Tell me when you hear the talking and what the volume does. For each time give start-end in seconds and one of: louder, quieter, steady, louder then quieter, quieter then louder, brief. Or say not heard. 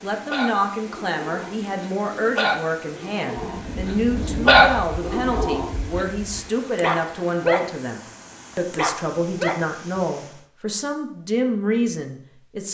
0.0-12.6 steady.